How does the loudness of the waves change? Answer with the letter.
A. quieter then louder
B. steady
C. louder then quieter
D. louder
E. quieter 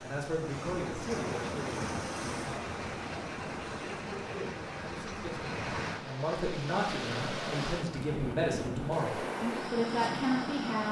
B.